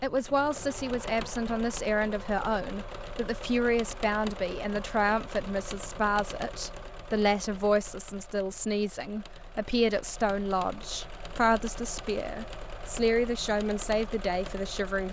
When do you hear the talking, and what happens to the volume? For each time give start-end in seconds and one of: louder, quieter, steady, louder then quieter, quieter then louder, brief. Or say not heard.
0.0-15.0 steady.